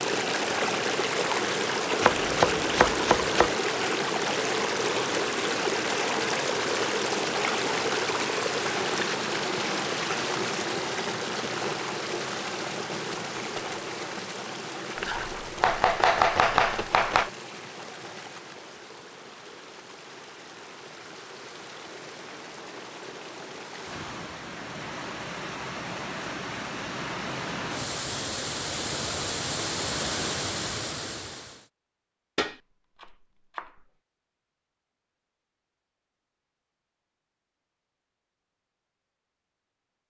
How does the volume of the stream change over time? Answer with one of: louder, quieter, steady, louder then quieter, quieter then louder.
quieter then louder.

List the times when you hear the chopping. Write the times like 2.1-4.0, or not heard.
2.0-3.5, 14.9-17.3, 32.4-33.7.